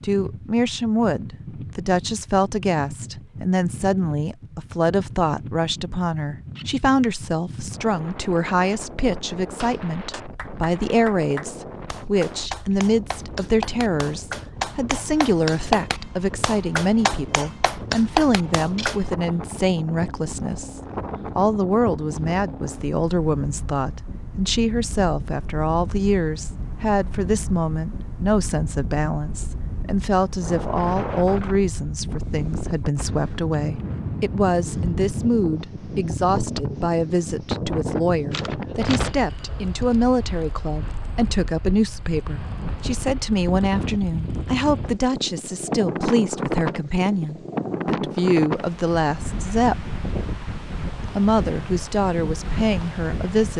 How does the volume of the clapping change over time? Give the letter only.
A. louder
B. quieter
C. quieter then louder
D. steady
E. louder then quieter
A.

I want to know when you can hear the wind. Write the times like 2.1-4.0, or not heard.
0.0-53.5.